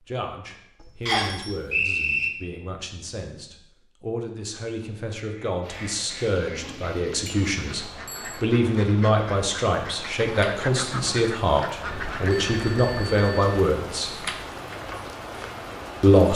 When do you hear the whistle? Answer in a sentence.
You can hear the whistle from 1.1 to 2.3 s.